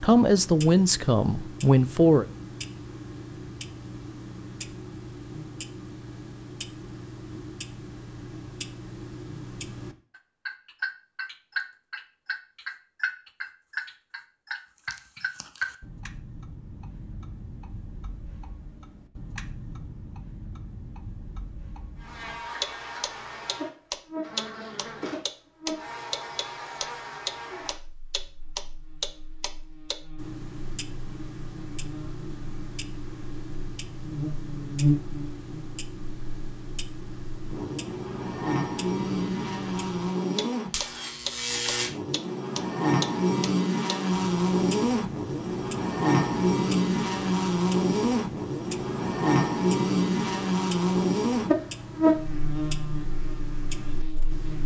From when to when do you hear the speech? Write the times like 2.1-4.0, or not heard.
0.0-2.2.